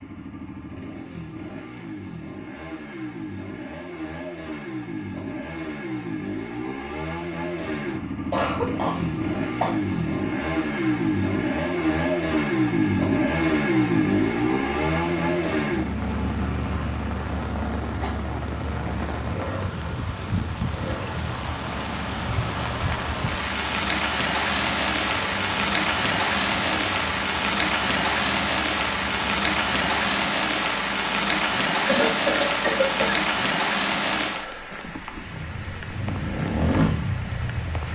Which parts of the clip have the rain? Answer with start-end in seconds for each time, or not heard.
14.2-37.9.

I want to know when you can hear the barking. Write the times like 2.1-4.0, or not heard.
not heard.